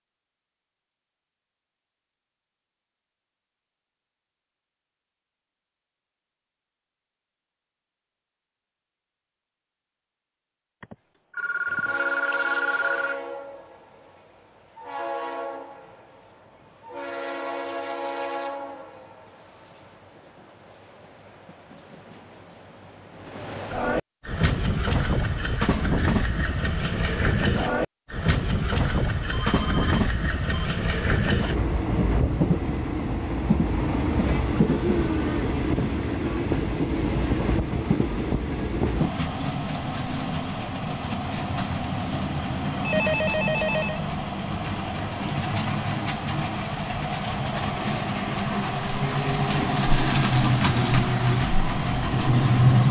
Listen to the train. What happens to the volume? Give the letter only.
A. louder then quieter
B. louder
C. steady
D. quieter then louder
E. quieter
B.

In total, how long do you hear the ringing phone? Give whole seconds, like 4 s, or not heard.
5 s.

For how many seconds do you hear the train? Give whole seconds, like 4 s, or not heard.
41 s.